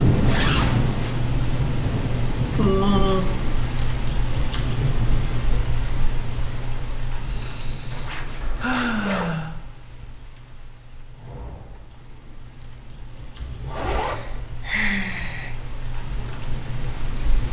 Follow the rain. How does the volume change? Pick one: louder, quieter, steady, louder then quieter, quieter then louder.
quieter then louder.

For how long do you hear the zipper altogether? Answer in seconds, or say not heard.
3 s.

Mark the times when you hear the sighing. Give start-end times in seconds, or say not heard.
2.3-3.3, 7.3-8.0, 8.6-9.5, 14.0-15.6.